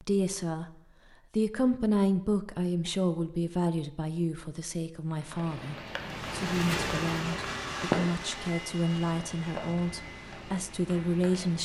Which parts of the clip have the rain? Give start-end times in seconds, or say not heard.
5.0-11.5.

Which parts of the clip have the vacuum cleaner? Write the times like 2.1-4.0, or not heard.
6.0-11.3.